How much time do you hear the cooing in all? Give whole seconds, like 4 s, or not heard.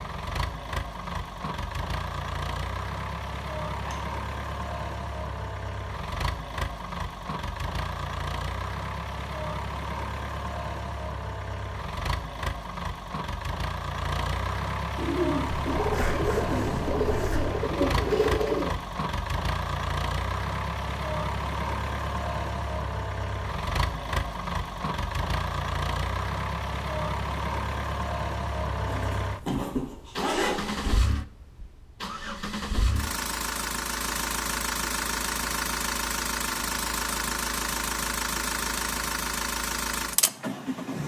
4 s.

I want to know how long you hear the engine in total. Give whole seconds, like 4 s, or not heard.
41 s.